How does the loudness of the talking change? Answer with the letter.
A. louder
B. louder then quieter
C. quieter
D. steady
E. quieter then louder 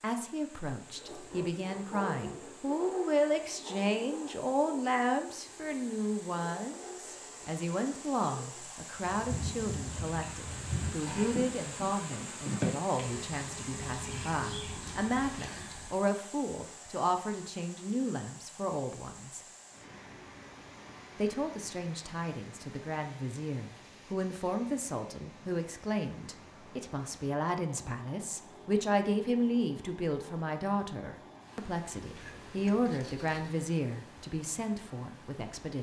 D.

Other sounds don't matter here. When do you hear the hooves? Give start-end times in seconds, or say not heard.
8.9-15.9.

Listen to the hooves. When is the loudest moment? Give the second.
13 s.